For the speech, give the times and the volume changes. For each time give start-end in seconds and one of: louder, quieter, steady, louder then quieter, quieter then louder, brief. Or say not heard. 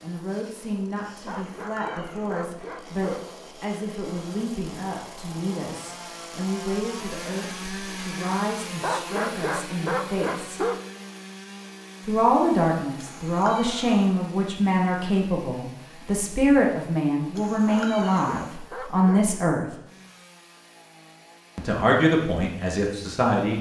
0.0-10.7 steady
12.1-19.7 steady
21.6-23.5 brief.